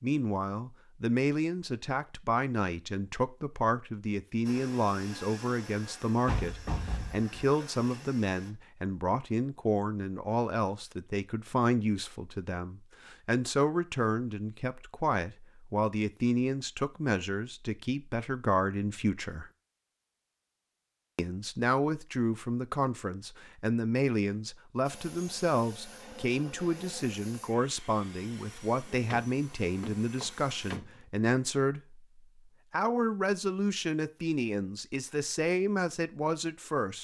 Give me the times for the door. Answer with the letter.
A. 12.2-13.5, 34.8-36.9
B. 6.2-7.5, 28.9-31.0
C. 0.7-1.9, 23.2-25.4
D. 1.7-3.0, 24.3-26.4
B.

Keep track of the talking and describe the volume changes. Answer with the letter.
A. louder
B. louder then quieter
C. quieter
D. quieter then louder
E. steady
E.